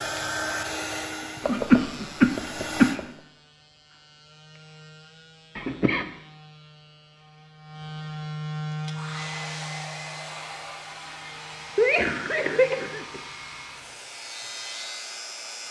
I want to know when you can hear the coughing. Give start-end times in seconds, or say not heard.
1.4-3.0, 5.5-6.0, 11.8-13.2.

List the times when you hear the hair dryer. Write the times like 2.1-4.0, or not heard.
0.0-3.0, 8.7-15.6.